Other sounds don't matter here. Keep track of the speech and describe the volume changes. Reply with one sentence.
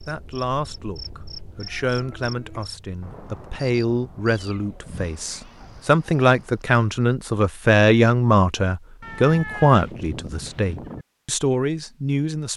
The loudness of the speech goes up, then down.